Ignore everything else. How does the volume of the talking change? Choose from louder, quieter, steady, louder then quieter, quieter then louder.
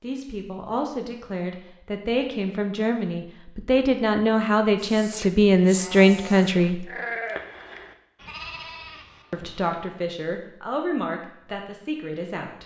louder then quieter.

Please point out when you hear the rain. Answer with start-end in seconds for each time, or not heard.
not heard.